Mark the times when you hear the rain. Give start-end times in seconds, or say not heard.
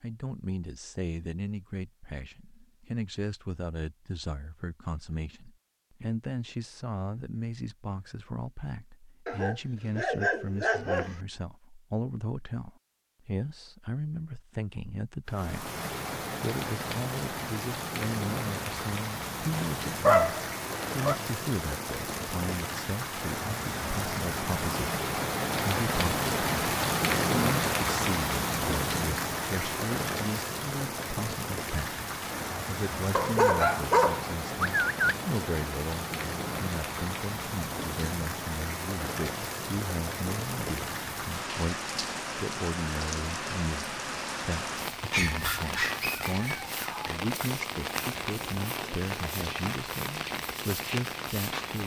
15.2-51.8.